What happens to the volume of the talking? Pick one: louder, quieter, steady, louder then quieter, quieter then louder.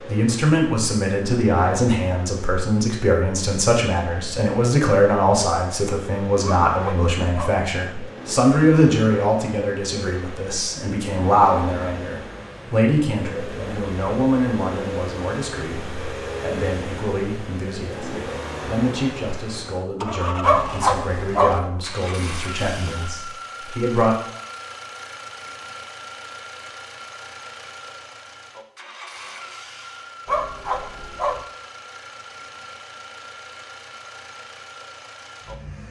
quieter.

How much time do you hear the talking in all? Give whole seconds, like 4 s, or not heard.
24 s.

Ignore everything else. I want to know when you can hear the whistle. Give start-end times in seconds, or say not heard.
not heard.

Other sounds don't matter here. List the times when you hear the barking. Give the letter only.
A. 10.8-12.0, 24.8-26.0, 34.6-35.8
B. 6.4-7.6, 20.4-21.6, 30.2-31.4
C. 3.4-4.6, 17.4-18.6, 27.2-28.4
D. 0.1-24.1
B.